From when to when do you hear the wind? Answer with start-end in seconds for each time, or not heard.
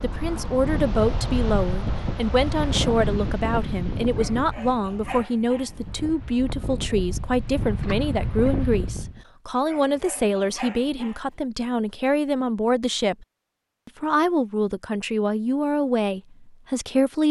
0.0-9.2.